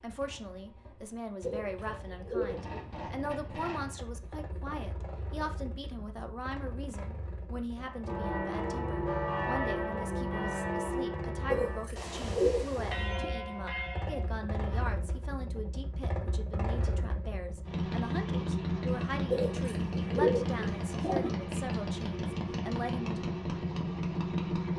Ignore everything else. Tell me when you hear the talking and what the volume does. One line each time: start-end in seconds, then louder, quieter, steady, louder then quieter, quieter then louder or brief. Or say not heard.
0.0-23.2 steady.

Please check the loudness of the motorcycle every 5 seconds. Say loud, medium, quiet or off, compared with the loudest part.
quiet, quiet, medium, loud, loud.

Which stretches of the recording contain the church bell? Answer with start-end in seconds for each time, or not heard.
7.8-14.3.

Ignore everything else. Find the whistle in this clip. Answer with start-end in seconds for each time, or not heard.
not heard.